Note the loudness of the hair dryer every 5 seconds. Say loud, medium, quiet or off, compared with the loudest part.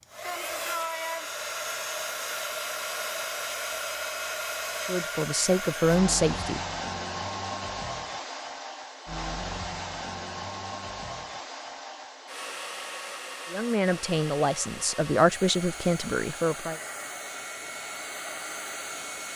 loud, loud, medium, medium.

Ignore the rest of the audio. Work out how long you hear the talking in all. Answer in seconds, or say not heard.
5 s.